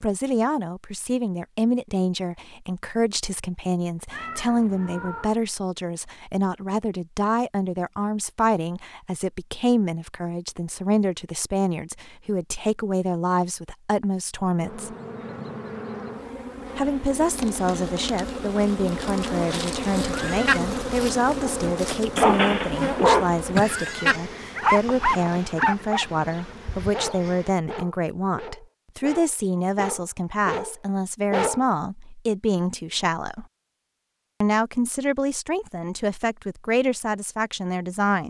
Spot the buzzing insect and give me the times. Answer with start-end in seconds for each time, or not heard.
14.6-27.6.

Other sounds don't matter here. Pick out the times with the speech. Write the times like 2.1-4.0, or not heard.
0.0-14.9, 16.8-33.5, 34.4-38.2.